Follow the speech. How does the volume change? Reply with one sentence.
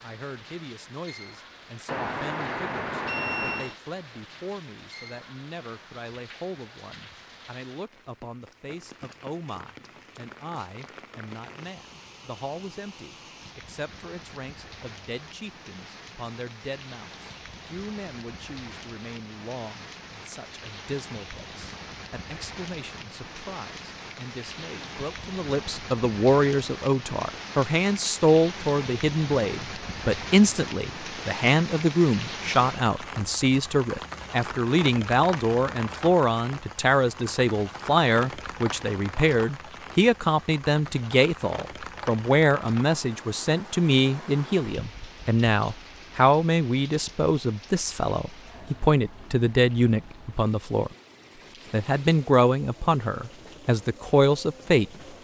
The volume of the speech goes up.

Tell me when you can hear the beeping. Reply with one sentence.
The beeping can be heard from 1.9 to 3.8 s.